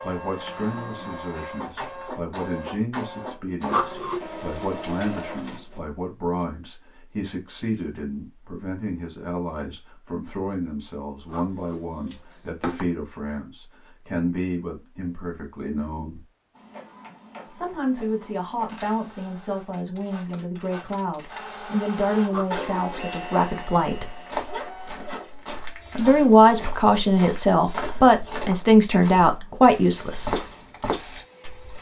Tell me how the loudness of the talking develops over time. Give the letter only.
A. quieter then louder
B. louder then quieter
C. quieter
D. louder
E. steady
D.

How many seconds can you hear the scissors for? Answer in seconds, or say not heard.
3 s.